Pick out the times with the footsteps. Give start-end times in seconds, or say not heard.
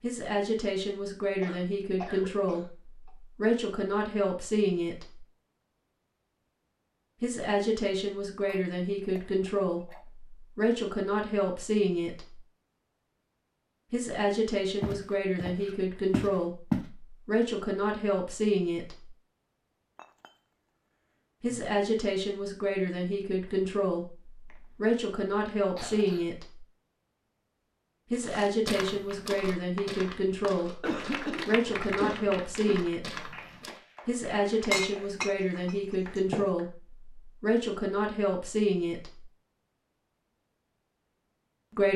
14.8-16.9, 28.1-33.8.